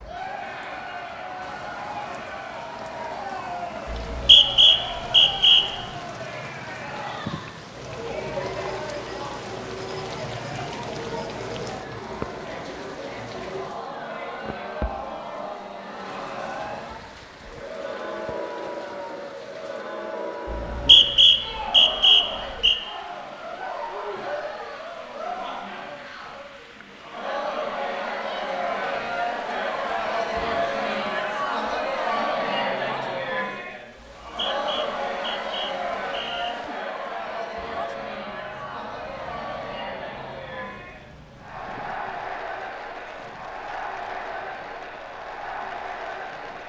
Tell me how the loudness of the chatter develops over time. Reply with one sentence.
The volume of the chatter goes up, then down.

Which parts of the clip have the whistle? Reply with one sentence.
You can hear the whistle from 3.9 to 5.7 s, from 20.4 to 22.8 s and from 34.0 to 36.5 s.